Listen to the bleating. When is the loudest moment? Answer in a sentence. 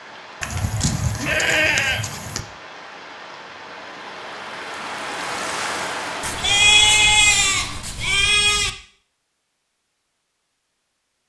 The loudest moment of the bleating is at 7 seconds.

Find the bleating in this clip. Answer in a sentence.
The bleating can be heard from 0.4 to 2.4 s and from 6.2 to 8.7 s.